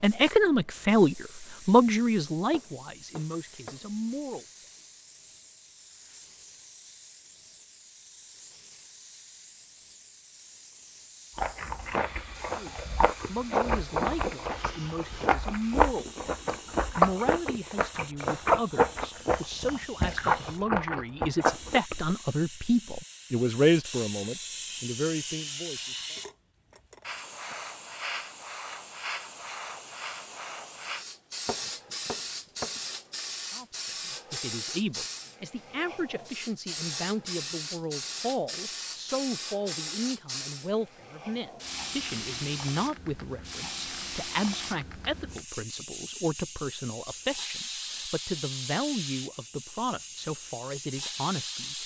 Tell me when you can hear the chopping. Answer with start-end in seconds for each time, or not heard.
2.5-3.9, 31.4-32.8.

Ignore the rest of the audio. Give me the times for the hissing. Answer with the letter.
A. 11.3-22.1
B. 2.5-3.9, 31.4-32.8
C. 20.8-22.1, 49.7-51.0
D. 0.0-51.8
D.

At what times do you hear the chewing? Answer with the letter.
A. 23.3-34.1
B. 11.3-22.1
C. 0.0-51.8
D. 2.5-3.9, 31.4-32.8
B.